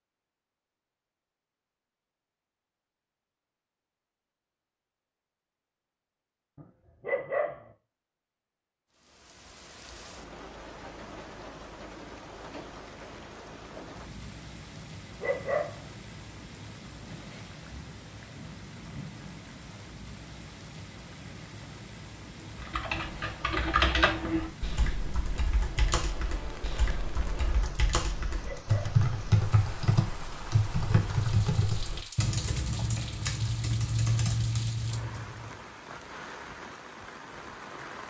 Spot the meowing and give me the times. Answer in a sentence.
The meowing can't be heard in this clip.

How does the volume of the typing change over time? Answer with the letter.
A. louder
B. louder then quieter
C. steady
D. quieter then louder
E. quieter
D.